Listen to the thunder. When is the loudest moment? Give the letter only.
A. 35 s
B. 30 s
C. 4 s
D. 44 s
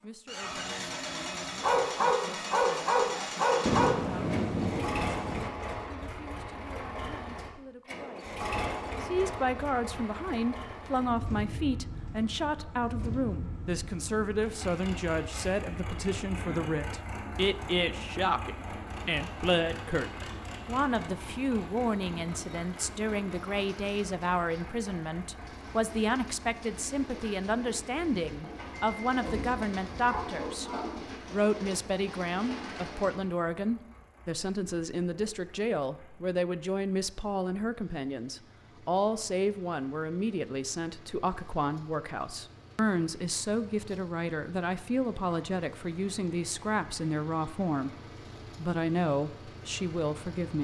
C.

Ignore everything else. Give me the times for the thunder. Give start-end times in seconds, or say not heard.
3.6-5.5, 29.1-30.3.